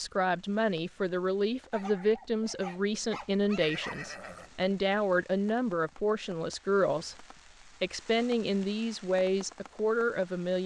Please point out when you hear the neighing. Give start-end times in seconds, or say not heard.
3.5-4.8.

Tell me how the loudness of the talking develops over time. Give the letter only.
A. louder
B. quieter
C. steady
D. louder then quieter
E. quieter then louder
C.